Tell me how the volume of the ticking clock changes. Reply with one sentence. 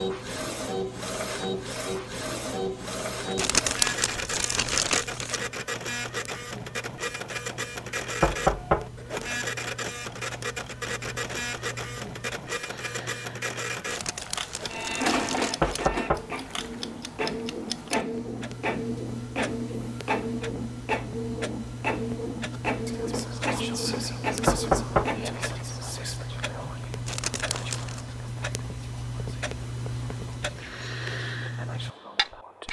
The loudness of the ticking clock goes up.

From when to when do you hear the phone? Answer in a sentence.
The phone can't be heard in this clip.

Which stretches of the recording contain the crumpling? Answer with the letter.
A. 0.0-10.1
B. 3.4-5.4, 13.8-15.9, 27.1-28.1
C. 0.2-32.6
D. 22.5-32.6
B.